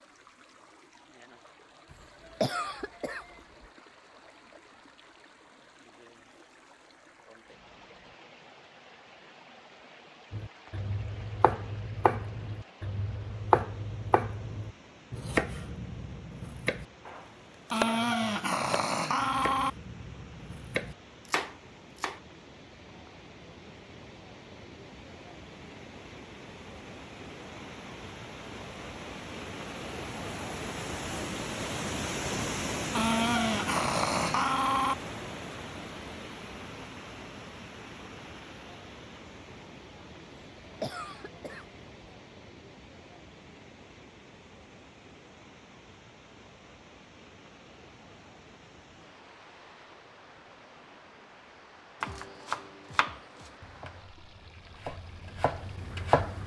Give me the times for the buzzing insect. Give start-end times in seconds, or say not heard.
not heard.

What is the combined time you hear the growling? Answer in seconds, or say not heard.
4 s.